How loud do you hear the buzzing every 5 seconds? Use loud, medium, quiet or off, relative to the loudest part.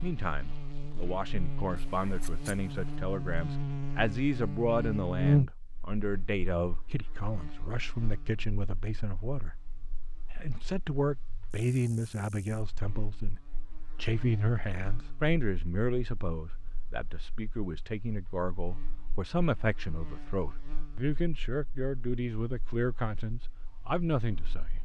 medium, loud, quiet, quiet, quiet.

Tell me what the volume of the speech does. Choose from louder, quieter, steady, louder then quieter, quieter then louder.
steady.